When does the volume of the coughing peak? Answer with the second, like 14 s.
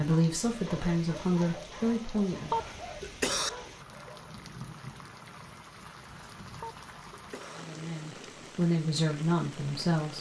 3 s.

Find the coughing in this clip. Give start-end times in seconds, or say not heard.
2.5-3.5, 6.6-7.6.